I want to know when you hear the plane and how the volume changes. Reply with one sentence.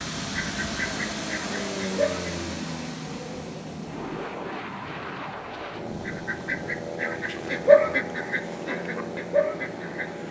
The plane can be heard from 0.0 to 10.2 s, at a steady volume.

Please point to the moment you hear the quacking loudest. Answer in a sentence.
The volume of the quacking peaks at 8 seconds.